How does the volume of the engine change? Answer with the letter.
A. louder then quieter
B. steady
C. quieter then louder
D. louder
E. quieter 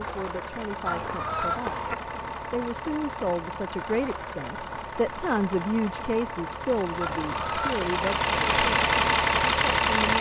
D.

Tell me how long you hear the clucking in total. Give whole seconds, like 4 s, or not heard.
2 s.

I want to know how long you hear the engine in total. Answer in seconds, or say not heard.
10 s.